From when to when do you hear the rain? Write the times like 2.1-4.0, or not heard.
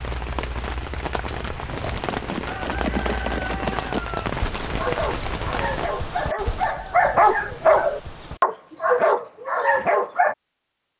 0.0-5.9.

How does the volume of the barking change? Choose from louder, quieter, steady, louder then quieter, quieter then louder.
louder.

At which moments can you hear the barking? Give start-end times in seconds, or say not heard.
4.8-10.3.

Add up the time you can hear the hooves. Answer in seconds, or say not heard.
7 s.